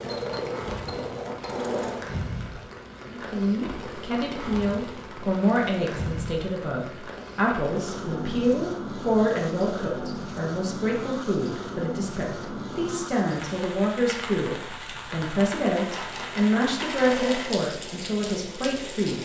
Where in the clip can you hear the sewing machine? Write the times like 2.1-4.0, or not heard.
0.0-2.0, 15.7-17.5.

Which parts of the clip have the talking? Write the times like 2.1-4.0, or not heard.
3.0-19.1.